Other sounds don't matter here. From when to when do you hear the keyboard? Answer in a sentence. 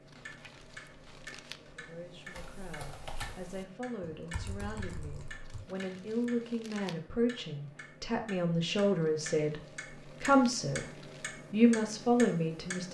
You can hear the keyboard from 0.0 to 5.7 s.